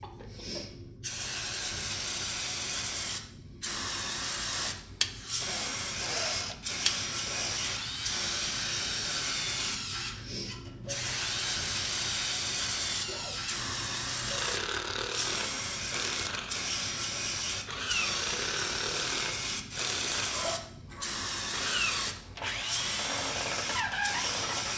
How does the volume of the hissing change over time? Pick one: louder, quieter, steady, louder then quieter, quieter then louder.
steady.